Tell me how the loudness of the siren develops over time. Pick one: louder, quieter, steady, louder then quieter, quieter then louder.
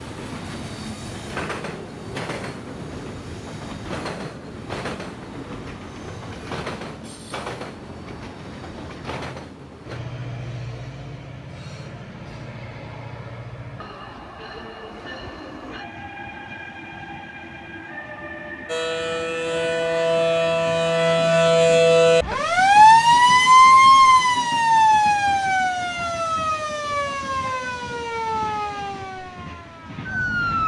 louder then quieter.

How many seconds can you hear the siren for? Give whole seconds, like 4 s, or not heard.
12 s.